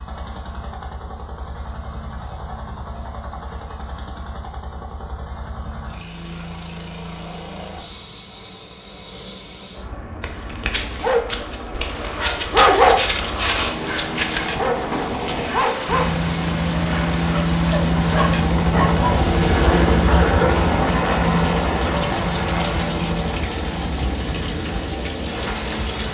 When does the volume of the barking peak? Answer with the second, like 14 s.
13 s.